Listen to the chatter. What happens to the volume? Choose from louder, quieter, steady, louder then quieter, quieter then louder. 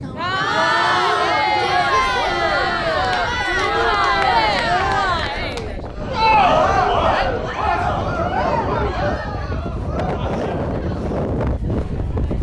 quieter.